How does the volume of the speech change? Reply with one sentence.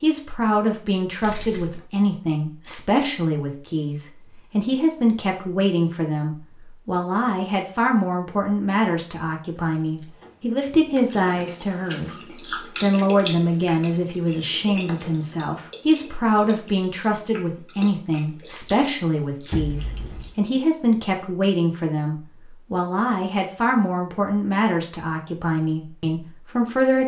The loudness of the speech stays about the same.